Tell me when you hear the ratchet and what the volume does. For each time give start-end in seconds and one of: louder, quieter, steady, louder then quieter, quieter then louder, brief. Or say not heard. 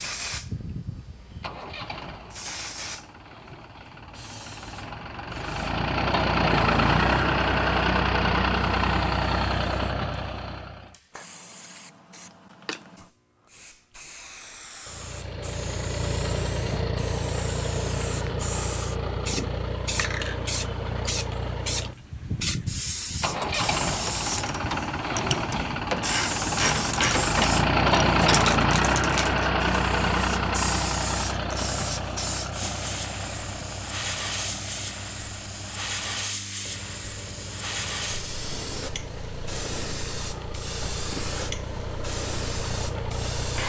23.2-28.5 louder.